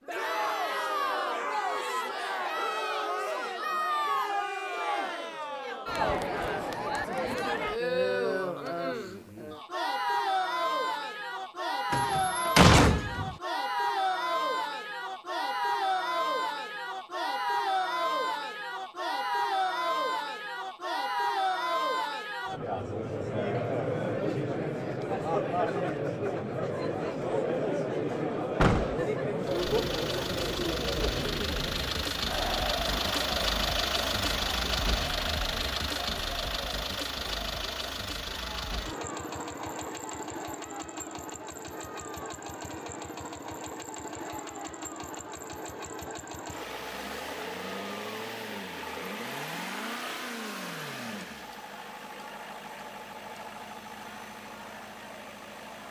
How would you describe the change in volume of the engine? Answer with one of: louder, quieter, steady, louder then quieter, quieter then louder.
quieter.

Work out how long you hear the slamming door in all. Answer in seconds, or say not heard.
2 s.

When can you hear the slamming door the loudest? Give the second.
13 s.